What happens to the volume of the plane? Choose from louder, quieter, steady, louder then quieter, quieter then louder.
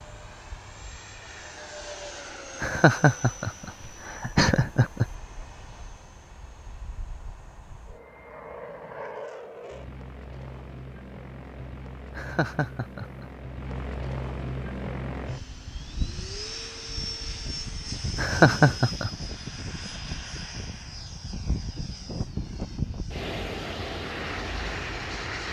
louder.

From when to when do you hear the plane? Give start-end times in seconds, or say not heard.
0.0-25.4.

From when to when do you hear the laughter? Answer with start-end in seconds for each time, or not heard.
2.6-5.0, 12.2-13.2, 18.1-19.1.